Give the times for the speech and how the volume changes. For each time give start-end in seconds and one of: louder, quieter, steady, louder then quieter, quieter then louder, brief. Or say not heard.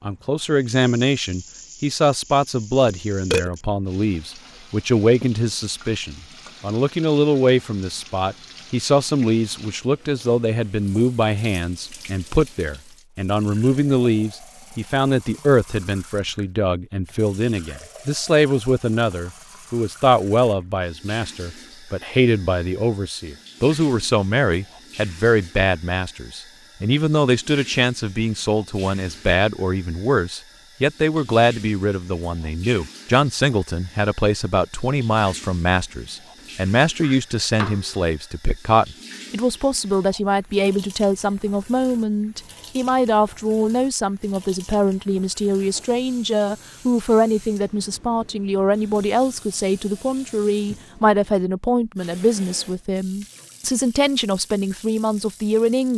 0.0-55.9 steady.